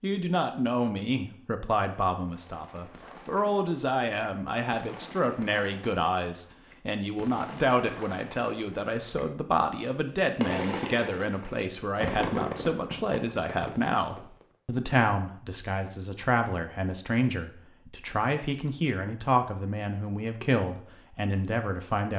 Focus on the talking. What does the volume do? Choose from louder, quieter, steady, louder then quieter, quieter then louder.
steady.